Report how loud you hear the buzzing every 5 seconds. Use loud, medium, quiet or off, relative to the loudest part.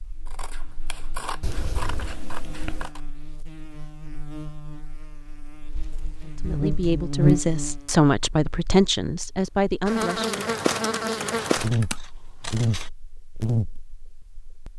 quiet, loud, loud.